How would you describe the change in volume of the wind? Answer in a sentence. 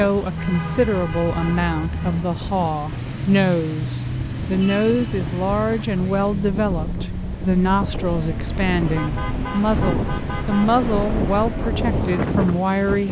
The loudness of the wind goes up.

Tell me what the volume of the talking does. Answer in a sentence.
The loudness of the talking stays about the same.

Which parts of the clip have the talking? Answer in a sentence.
You can hear the talking from 0.0 to 13.0 s.